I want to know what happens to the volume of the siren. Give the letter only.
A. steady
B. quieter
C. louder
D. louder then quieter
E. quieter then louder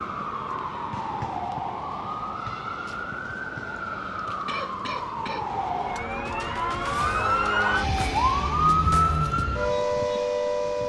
C.